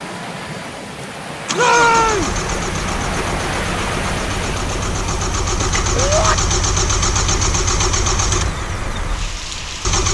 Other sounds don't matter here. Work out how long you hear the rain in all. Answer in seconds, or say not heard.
10 s.